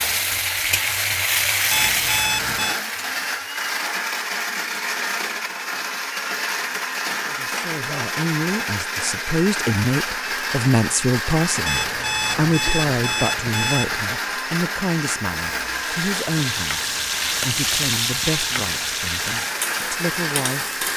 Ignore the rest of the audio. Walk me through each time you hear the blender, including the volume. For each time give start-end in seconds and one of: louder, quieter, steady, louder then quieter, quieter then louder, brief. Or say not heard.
0.0-20.9 steady.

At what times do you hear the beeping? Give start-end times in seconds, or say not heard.
1.7-2.8, 11.7-14.1.